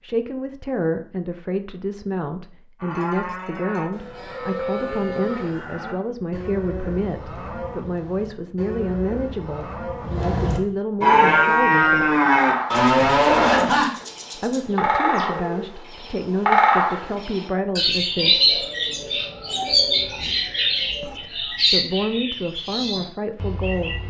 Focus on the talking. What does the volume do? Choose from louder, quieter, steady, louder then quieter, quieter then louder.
steady.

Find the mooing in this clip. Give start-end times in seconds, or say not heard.
2.8-14.6.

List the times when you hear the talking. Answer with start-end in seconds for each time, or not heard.
0.0-12.2, 14.3-18.6, 21.0-24.0.